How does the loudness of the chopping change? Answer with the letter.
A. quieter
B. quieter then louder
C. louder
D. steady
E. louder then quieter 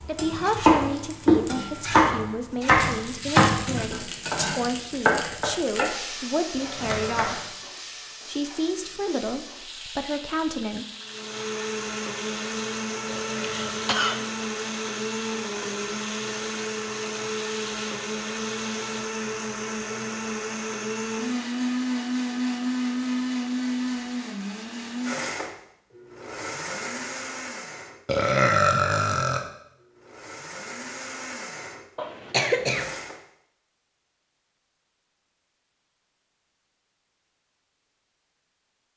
A.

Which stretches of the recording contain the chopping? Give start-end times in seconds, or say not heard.
0.0-7.5.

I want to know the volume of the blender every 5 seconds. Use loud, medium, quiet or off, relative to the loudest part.
off, off, loud, loud, loud, medium, medium, off.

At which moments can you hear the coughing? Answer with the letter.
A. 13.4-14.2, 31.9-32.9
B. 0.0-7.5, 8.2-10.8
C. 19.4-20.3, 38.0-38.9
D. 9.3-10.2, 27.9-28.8
A.